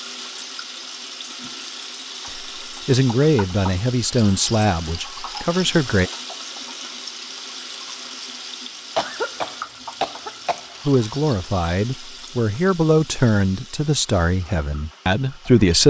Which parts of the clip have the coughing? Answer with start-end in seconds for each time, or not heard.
8.9-10.8.